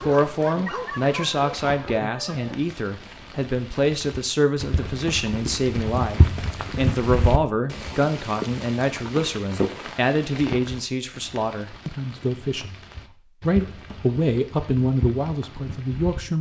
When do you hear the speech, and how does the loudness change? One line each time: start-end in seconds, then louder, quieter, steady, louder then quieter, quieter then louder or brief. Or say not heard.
0.0-12.8 steady
13.4-16.3 brief.